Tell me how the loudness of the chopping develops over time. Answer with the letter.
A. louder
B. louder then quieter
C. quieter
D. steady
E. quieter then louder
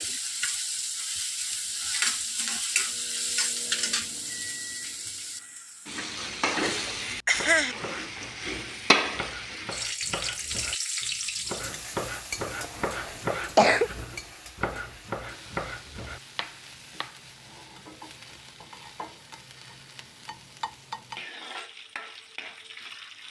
A.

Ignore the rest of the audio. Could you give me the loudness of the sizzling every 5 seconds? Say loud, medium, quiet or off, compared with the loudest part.
loud, loud, medium, quiet, medium.